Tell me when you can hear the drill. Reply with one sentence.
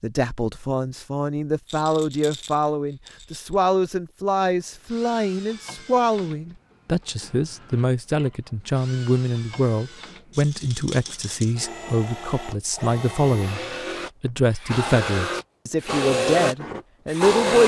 The drill can be heard from 4.5 to 17.6 s.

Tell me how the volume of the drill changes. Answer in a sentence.
The loudness of the drill goes up.